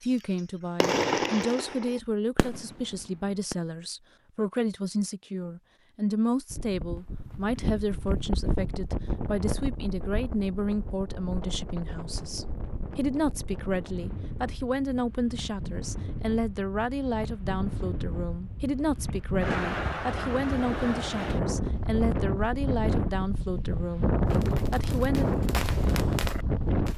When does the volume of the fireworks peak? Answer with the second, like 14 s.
1 s.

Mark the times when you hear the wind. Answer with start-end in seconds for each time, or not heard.
6.5-26.9.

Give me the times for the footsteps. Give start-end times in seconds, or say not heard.
not heard.